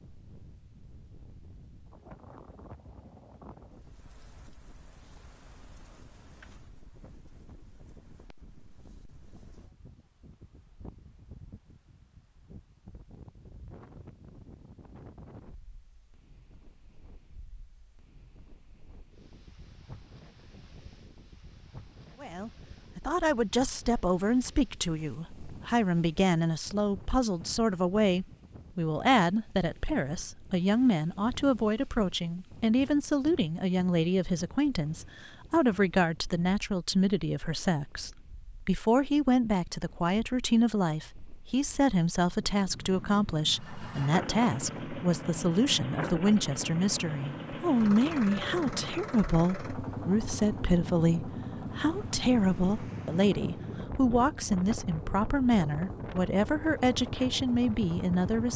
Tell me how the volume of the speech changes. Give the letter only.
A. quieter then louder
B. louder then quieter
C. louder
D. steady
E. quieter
D.